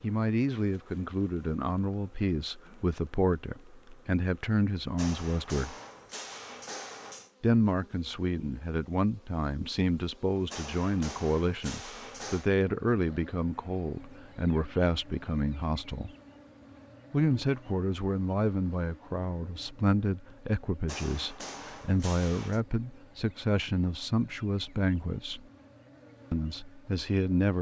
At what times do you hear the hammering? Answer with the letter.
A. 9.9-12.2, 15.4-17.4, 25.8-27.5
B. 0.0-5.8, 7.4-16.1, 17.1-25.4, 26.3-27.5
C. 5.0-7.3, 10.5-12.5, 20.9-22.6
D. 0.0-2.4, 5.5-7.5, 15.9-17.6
C.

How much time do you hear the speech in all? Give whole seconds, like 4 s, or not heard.
24 s.